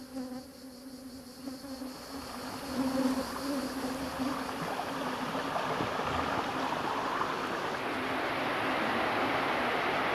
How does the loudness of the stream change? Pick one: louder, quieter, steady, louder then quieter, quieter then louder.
louder.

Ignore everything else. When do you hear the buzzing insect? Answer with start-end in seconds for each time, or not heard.
0.0-9.8.